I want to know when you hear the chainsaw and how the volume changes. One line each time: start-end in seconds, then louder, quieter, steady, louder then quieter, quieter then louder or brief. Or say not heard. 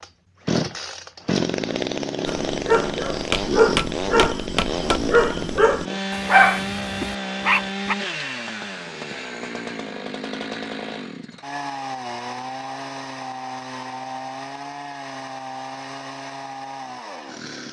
0.0-17.6 quieter.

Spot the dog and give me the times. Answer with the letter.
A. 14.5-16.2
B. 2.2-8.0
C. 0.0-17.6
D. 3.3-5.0
B.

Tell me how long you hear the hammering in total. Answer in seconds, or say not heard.
2 s.